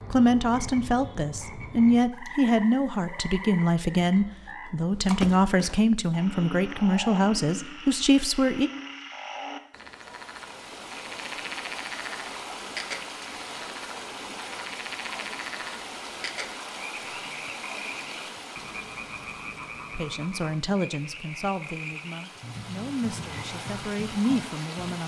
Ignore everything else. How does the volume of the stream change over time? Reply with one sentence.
The volume of the stream goes down, then up.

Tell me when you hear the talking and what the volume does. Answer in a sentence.
The talking can be heard from 0.1 to 8.7 s, at a steady volume; and from 19.9 to 25.0 s, getting quieter then louder.